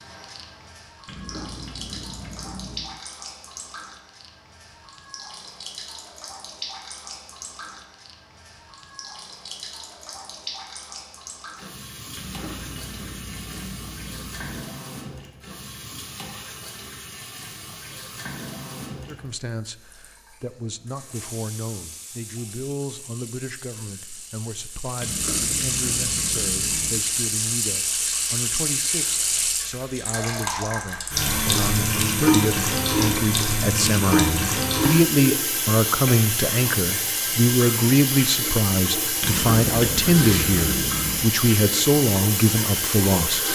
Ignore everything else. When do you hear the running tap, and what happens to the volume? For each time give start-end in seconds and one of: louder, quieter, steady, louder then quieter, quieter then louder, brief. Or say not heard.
0.0-43.4 louder.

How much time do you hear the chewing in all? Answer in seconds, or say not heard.
8 s.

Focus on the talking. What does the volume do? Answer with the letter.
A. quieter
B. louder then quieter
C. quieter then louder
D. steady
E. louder
E.